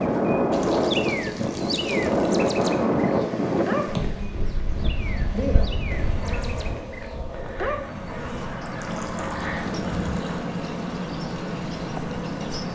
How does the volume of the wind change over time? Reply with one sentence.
The loudness of the wind goes down.